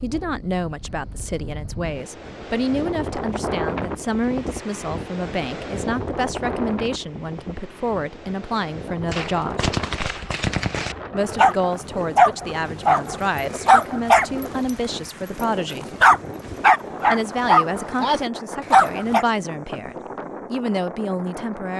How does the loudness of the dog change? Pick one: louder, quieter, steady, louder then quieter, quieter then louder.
quieter then louder.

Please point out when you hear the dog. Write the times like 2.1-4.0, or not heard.
11.3-19.2.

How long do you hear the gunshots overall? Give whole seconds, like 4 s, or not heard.
2 s.